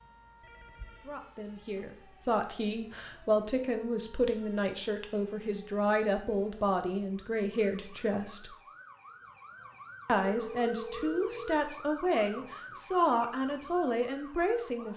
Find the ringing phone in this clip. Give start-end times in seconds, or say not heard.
0.4-1.1, 10.2-11.7.